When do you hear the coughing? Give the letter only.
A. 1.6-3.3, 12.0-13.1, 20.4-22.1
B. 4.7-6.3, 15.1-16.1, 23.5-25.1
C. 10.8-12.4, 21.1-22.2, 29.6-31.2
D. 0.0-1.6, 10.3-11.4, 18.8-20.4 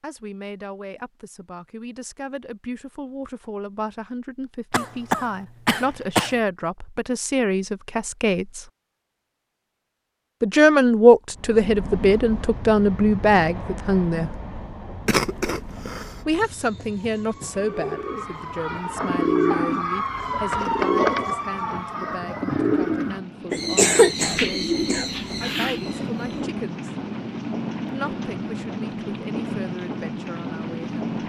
B.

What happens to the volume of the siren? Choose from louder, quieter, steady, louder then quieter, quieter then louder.
louder.